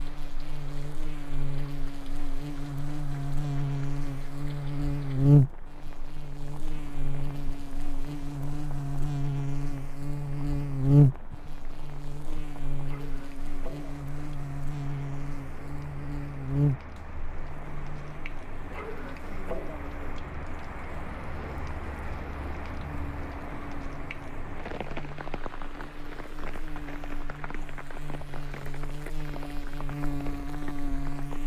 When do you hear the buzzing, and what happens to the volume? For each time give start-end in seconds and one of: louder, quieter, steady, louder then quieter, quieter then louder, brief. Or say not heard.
0.0-31.4 quieter then louder.